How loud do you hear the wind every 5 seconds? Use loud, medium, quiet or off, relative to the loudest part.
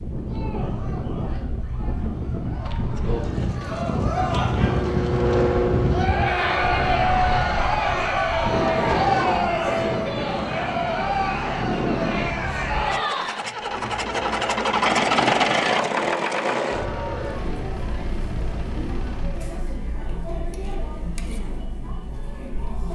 loud, loud, loud, off, off.